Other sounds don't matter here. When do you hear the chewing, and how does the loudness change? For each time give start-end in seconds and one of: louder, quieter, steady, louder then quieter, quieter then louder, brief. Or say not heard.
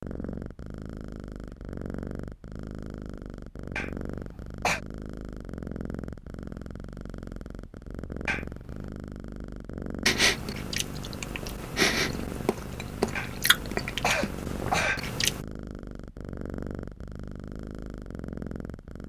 10.1-15.4 louder then quieter.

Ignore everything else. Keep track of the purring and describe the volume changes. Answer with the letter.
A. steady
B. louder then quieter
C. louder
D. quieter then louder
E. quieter
A.